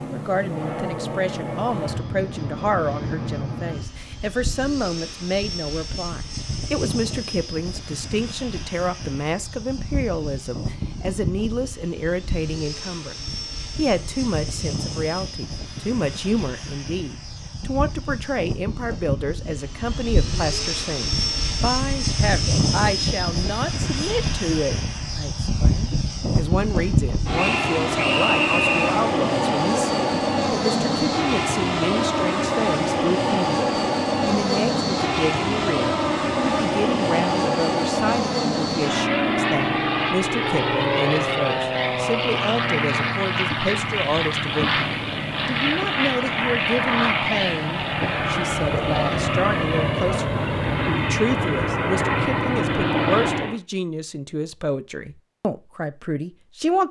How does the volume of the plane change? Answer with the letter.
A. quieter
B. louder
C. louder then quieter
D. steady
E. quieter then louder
B.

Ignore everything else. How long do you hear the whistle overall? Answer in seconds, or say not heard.
2 s.